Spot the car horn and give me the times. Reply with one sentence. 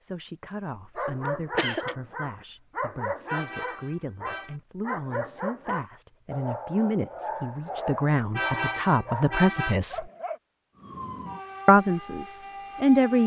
You can hear the car horn from 3.2 to 4.5 s and from 8.3 to 9.8 s.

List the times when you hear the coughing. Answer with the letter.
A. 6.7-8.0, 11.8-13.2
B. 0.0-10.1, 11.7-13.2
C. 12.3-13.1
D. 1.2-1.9
D.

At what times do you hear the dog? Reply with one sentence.
You can hear the dog from 0.8 to 10.4 s.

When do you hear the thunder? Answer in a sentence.
You can't hear the thunder here.